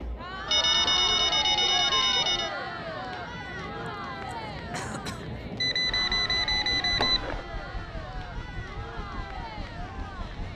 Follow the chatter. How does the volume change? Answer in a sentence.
The volume of the chatter goes down.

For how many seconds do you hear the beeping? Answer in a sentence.
You can hear the beeping for 4 seconds altogether.